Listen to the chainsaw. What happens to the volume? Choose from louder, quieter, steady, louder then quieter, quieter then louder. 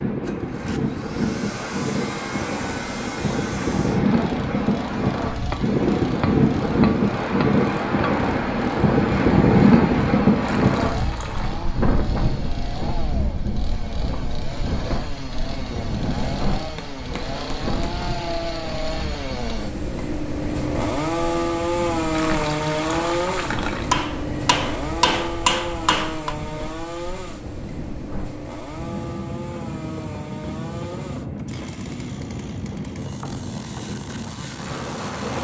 louder then quieter.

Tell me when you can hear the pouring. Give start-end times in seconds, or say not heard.
10.4-11.6, 22.1-23.9.